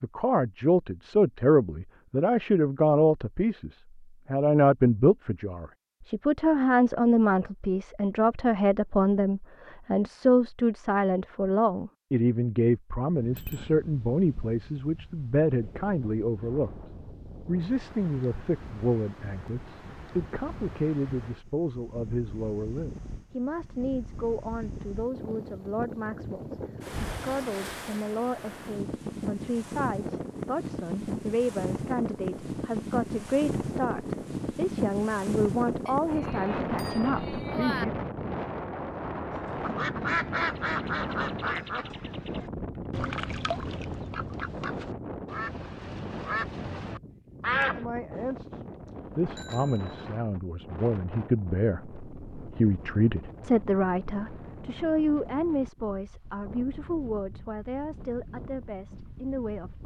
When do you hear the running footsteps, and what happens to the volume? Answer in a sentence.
You can't hear the running footsteps here.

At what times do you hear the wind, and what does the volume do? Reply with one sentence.
The wind can be heard from 13.1 to 59.8 s, getting louder then quieter.